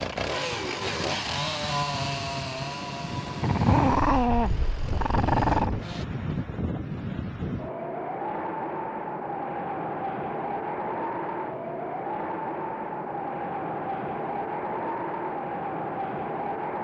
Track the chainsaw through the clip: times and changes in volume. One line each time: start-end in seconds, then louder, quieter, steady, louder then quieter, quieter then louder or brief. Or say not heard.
0.0-6.0 quieter.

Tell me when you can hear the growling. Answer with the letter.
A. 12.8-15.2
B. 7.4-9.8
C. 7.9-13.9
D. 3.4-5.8
D.